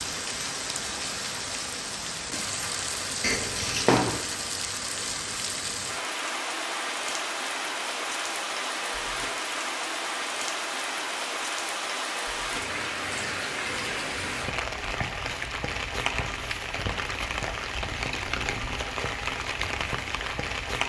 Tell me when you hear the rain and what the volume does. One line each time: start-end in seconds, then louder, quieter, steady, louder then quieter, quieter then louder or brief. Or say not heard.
0.0-20.8 steady.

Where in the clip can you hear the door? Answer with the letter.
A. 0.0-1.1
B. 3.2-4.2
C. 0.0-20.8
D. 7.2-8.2
B.